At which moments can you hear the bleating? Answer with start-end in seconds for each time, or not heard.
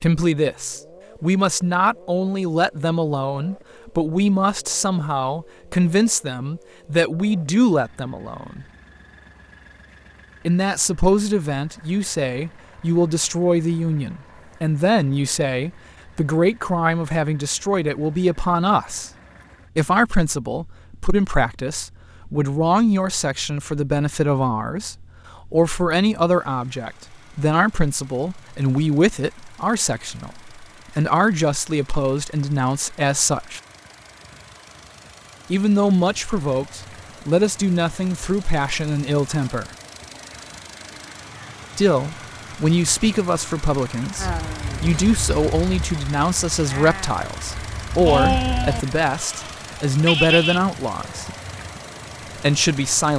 44.1-50.6.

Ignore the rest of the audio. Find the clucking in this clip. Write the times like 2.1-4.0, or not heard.
not heard.